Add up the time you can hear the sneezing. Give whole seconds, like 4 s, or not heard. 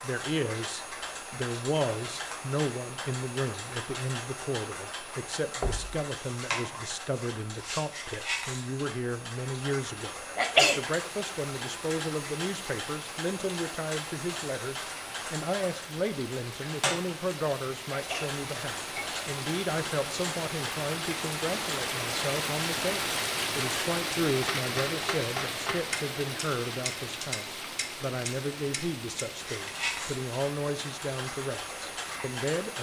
2 s.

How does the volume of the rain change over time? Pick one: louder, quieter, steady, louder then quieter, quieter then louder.
louder then quieter.